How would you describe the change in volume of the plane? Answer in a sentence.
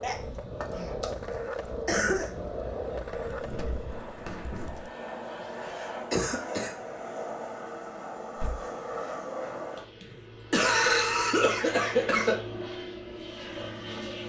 The volume of the plane goes up.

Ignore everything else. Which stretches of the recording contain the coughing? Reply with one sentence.
The coughing can be heard from 0.0 to 2.3 s, from 5.7 to 6.8 s and from 9.8 to 12.3 s.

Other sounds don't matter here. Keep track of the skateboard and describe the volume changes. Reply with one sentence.
The volume of the skateboard stays about the same.